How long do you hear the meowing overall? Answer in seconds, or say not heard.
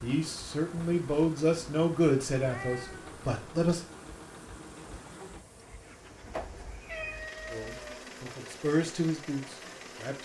2 s.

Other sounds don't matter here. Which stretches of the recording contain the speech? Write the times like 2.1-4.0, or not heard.
0.0-3.9, 7.5-10.2.